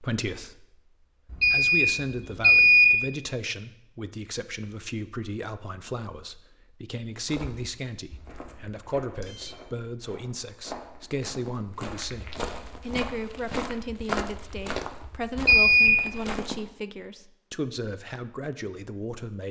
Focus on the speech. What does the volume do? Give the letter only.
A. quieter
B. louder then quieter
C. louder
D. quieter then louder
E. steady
E.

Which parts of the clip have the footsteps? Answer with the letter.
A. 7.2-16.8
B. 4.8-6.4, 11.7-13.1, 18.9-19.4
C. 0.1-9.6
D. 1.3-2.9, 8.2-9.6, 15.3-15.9
A.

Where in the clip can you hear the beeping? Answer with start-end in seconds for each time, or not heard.
1.3-2.9, 8.2-9.6, 15.3-15.9.